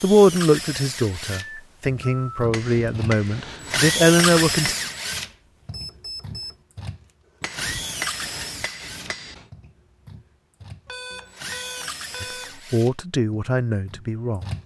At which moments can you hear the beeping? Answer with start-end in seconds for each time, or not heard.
1.3-2.5, 5.2-6.5, 10.8-12.6.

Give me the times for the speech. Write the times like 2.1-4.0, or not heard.
0.0-4.8, 12.2-14.4.